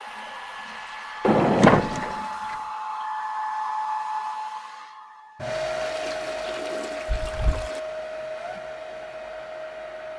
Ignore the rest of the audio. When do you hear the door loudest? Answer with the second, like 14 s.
2 s.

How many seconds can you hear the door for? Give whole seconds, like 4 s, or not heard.
2 s.